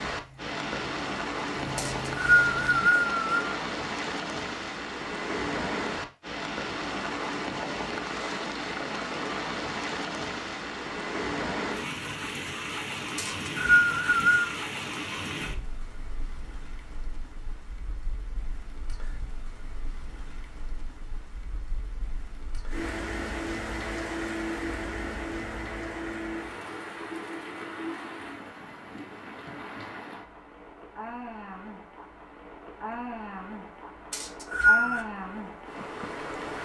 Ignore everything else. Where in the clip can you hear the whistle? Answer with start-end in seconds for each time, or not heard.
1.8-3.5, 13.2-14.5, 34.1-35.0.